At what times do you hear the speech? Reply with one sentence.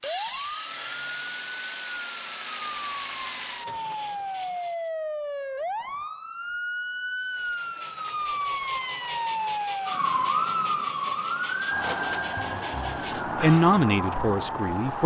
You can hear the speech from 13.4 to 15.0 s.